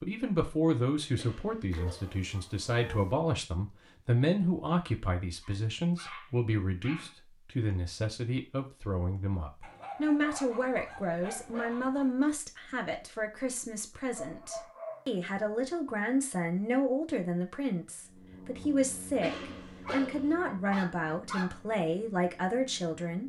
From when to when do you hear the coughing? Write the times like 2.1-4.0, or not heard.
1.1-2.2, 19.2-20.4.